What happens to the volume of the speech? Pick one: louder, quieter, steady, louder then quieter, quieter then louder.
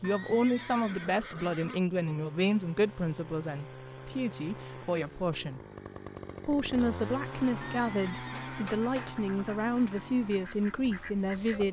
steady.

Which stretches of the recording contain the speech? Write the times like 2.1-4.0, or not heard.
0.0-5.6, 6.5-11.6.